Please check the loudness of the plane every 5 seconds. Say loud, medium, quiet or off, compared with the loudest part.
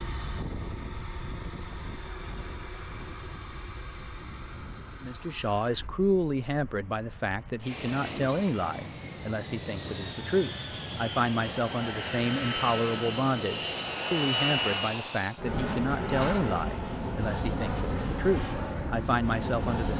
medium, medium, loud, loud.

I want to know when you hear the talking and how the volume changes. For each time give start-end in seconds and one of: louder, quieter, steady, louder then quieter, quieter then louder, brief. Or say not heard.
5.0-19.9 steady.